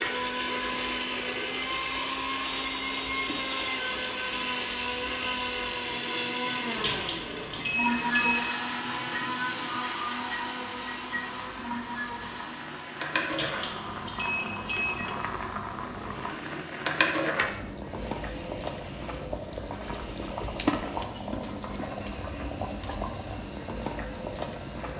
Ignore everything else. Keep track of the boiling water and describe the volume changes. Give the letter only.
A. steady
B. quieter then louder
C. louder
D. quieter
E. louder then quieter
C.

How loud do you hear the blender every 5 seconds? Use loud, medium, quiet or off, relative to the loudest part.
loud, loud, medium, quiet, quiet.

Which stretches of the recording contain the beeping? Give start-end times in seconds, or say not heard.
6.8-8.5, 13.3-15.0.